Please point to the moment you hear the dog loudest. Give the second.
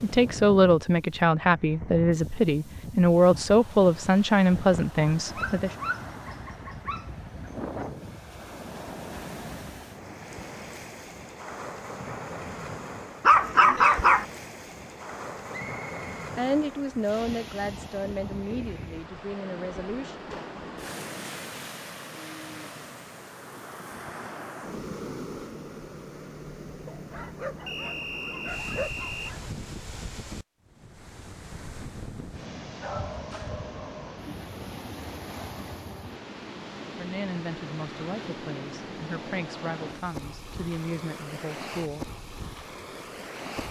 14 s.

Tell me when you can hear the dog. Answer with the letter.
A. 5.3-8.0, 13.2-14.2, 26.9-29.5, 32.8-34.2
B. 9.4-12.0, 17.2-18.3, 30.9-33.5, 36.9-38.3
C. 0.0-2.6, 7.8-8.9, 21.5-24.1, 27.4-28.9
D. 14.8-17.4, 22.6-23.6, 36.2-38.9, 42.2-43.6
A.